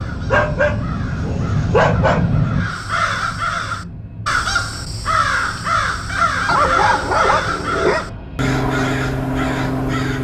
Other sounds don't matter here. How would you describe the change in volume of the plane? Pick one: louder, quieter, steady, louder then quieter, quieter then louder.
quieter.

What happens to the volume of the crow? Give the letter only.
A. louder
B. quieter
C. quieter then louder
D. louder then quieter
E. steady
A.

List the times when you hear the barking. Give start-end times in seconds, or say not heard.
0.3-2.2, 6.5-8.1.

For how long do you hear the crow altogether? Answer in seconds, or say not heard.
10 s.